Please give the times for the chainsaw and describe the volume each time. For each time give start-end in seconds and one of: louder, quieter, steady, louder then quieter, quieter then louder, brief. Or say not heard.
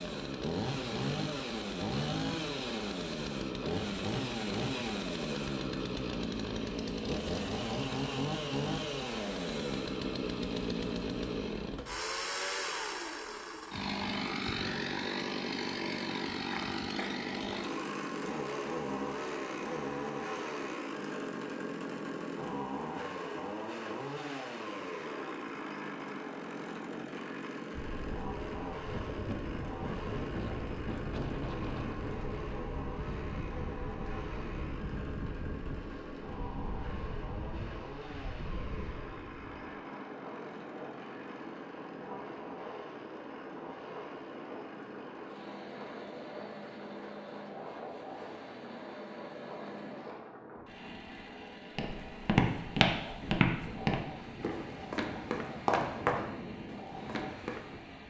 0.0-58.0 quieter.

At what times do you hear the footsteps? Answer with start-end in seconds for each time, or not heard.
51.8-57.6.